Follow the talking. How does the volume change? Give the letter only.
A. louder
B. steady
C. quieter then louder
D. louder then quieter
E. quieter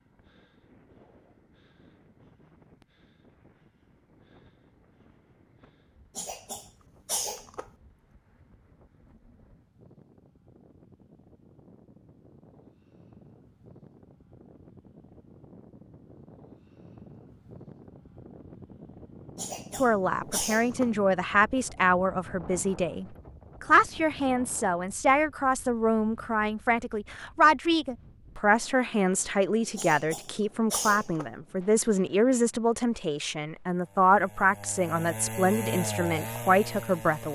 B.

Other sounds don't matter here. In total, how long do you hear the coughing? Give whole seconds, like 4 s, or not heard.
5 s.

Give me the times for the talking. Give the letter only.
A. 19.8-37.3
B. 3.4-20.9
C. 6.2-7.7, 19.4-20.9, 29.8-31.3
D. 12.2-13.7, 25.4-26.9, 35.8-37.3
A.